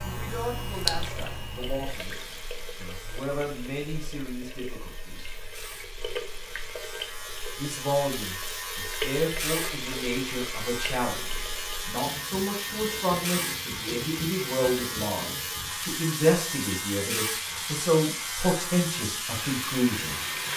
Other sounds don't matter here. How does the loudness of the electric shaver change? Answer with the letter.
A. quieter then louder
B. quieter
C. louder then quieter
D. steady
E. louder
E.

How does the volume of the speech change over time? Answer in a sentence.
The loudness of the speech goes up.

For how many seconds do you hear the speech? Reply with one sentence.
The speech can be heard for 18 seconds in total.